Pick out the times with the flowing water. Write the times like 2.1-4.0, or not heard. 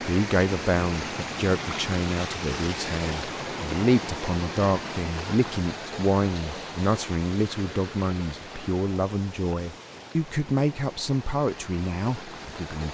0.0-12.8.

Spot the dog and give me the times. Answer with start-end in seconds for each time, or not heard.
not heard.